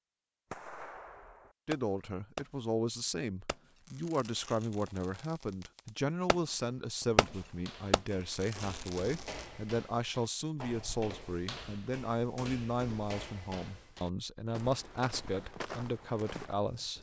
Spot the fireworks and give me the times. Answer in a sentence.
You can hear the fireworks from 0.5 to 2.5 s, from 3.5 to 6.3 s and from 7.9 to 9.4 s.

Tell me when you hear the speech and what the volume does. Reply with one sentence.
The speech can be heard from 1.6 to 16.9 s, at a steady volume.